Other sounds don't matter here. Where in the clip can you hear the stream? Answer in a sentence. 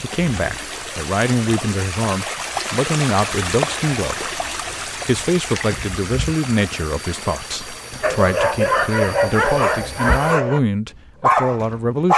You can hear the stream from 0.0 to 10.4 s.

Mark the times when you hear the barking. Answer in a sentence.
You can hear the barking from 8.0 to 10.6 s and from 11.2 to 12.1 s.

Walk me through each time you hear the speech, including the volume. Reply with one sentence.
The speech can be heard from 0.0 to 12.1 s, at a steady volume.